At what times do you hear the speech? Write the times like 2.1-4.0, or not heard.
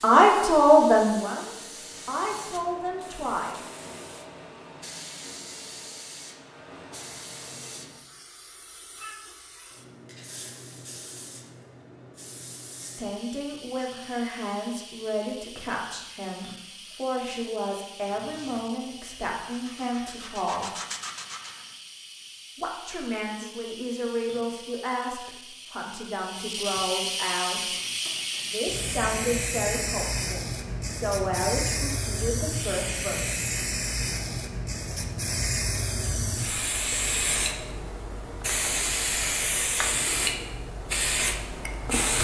0.0-3.6, 12.8-20.8, 22.6-27.7, 28.4-33.5.